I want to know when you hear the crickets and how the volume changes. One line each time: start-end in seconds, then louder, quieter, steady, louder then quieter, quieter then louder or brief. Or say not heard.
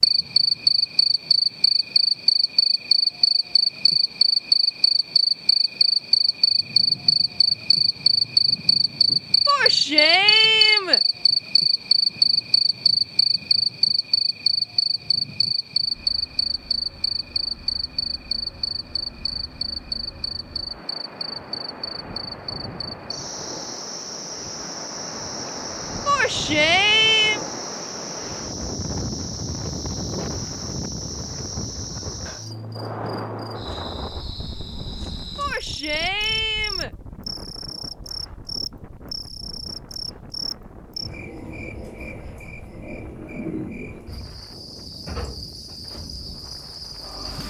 0.0-47.4 quieter.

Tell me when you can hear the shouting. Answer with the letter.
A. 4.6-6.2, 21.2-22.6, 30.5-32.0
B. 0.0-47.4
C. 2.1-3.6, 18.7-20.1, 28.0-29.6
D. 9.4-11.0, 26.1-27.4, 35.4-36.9
D.